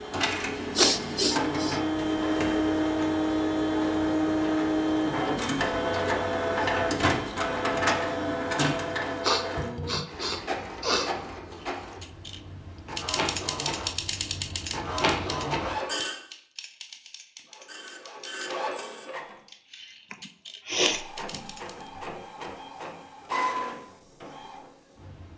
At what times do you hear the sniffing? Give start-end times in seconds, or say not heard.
0.8-1.8, 9.2-11.1, 20.1-21.0.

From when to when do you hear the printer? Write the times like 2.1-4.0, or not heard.
0.0-16.2, 17.4-19.4, 20.9-25.3.